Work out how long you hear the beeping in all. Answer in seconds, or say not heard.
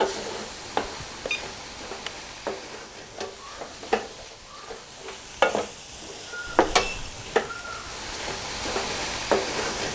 2 s.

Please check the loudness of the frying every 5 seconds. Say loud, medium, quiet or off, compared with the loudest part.
medium, loud.